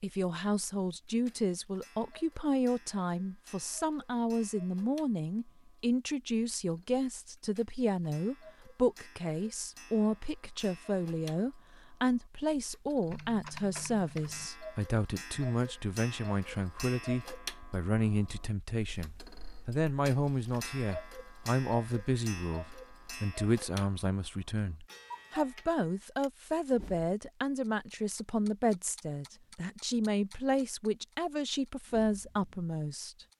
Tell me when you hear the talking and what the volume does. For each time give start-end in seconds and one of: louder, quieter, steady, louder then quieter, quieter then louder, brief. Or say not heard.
0.0-33.3 steady.